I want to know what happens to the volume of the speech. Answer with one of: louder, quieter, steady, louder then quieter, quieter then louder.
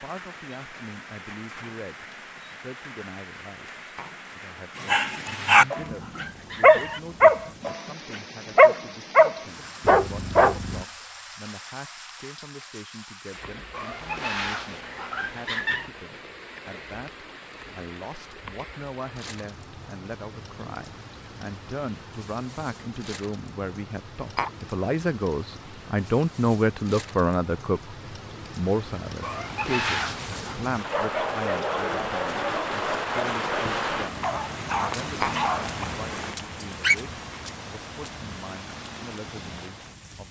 louder then quieter.